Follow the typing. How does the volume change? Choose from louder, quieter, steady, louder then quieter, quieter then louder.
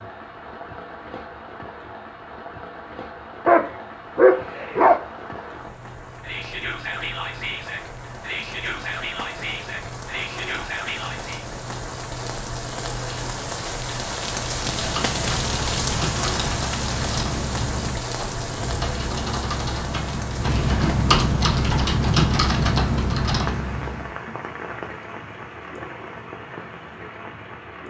louder.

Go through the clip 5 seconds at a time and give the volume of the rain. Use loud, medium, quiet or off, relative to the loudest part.
medium, medium, loud, loud, medium, medium.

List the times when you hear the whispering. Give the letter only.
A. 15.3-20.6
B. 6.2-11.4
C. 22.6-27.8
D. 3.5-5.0
B.